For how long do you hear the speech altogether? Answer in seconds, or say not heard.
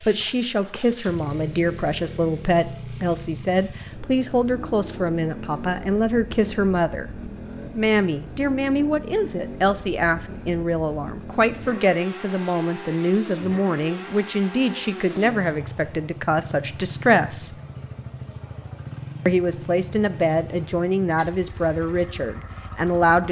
21 s.